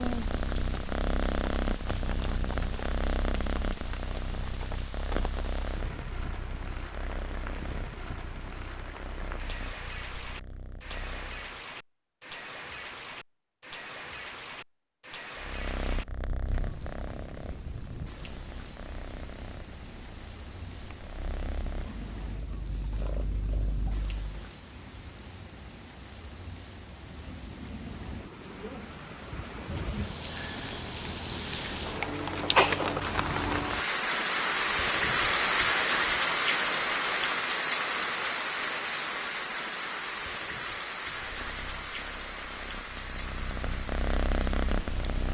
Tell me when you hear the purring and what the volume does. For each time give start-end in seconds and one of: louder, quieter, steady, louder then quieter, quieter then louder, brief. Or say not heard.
0.0-11.6 quieter
15.3-24.5 quieter then louder
41.0-45.3 louder.